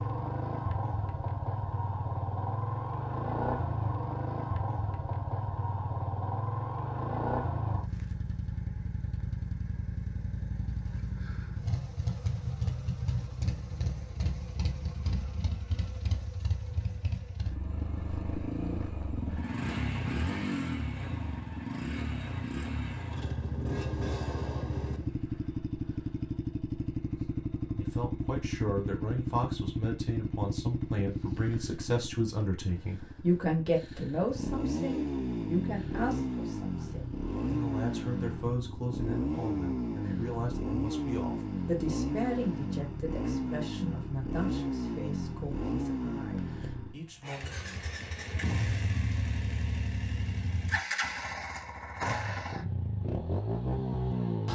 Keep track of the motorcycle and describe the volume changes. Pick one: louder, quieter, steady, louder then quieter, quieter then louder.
steady.